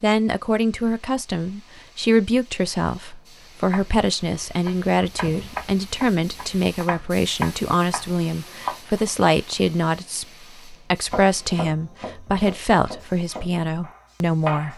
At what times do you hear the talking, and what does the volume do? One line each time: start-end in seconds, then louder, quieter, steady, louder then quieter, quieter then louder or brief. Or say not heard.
0.0-14.7 steady.